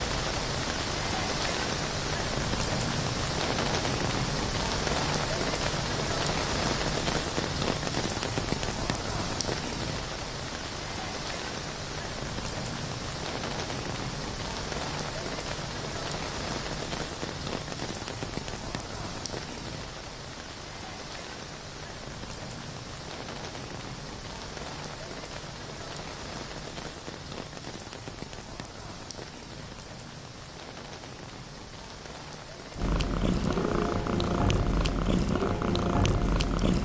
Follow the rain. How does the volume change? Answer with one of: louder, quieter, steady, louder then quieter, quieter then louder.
quieter.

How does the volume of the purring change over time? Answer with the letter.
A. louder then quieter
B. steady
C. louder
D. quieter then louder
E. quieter
B.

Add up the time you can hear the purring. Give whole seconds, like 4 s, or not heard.
4 s.